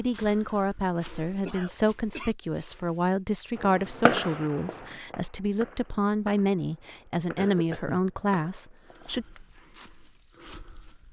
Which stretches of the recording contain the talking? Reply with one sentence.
You can hear the talking from 0.0 to 9.2 s.